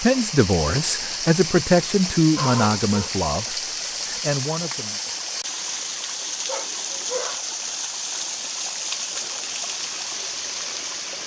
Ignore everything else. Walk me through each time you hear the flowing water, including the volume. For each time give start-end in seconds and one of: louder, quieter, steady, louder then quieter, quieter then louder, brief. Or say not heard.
0.0-11.2 steady.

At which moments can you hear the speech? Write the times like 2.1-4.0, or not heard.
0.0-5.0.